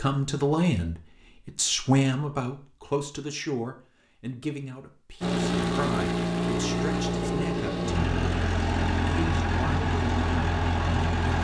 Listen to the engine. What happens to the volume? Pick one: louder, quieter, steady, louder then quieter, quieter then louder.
steady.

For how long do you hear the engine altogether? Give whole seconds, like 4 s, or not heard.
6 s.